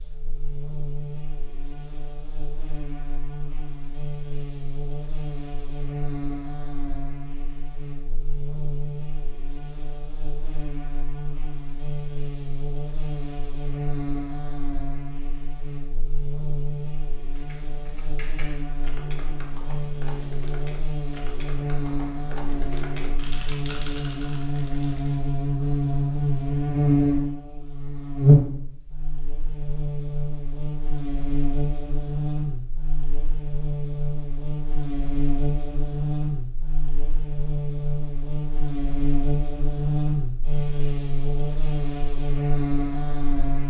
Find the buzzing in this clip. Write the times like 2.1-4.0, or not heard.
0.0-43.6.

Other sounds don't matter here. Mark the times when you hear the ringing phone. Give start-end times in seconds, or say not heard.
not heard.